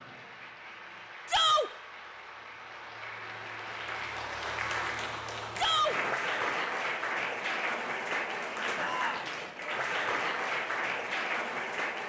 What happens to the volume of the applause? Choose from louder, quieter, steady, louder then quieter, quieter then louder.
louder.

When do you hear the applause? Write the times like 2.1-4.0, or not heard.
0.0-12.0.